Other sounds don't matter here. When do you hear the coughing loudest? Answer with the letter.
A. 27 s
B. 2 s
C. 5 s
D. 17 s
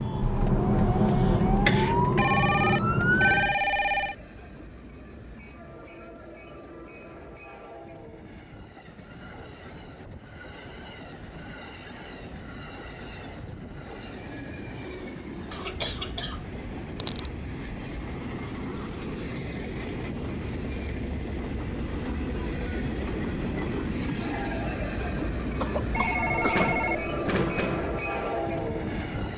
B.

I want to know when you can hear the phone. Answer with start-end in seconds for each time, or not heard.
2.1-4.2, 25.9-27.9.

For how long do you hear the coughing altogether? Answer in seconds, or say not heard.
5 s.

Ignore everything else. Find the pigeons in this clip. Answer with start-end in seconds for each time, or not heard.
not heard.